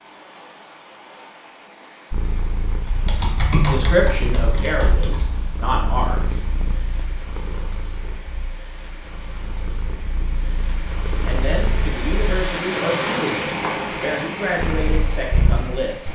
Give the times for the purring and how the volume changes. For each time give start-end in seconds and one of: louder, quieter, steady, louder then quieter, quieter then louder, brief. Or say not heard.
2.1-12.5 quieter then louder
14.6-16.0 brief.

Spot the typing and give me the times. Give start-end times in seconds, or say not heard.
2.9-5.5.